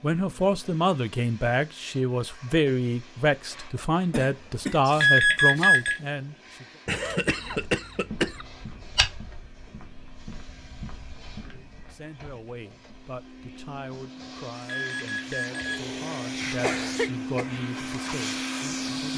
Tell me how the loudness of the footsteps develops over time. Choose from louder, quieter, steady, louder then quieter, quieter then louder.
louder then quieter.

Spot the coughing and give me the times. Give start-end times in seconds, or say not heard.
4.1-4.8, 6.8-8.4, 16.6-17.6.